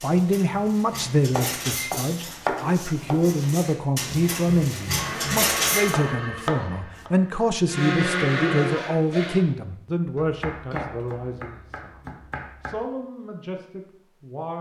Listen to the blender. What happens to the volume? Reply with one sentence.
The volume of the blender goes down, then up.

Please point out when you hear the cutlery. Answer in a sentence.
The cutlery can be heard from 0.0 to 6.0 s.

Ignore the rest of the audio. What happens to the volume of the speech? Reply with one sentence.
The loudness of the speech goes down.